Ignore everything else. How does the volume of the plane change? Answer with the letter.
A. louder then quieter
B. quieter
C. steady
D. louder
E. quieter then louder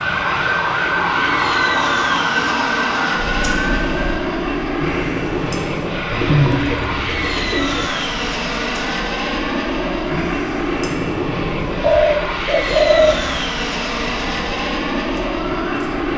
C.